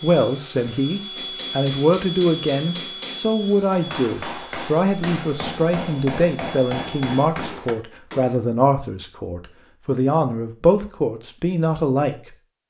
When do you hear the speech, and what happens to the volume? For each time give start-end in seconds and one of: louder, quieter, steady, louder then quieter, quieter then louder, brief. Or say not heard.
0.0-12.3 steady.